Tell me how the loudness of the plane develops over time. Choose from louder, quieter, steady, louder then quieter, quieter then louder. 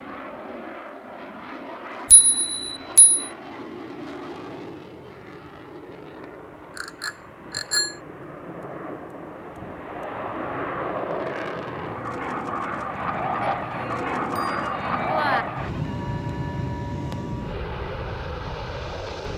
louder.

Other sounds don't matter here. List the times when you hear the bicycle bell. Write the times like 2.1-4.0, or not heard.
2.1-3.2, 6.8-8.0, 13.4-15.4.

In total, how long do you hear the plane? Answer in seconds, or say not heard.
19 s.